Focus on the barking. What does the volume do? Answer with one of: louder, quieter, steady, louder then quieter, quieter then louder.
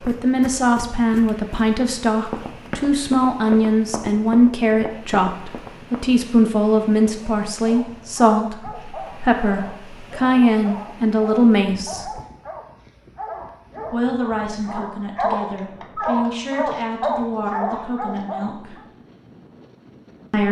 louder.